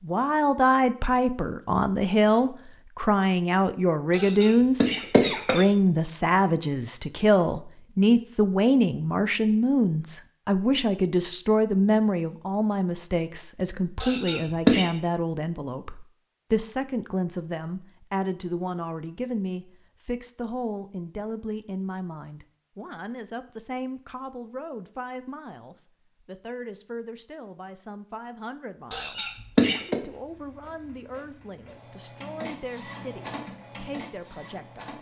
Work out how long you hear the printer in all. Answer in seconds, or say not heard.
5 s.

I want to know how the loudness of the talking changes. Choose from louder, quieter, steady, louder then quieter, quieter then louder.
quieter.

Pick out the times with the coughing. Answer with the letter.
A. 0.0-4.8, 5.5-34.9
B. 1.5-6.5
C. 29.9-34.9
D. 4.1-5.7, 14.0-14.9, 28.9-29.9
D.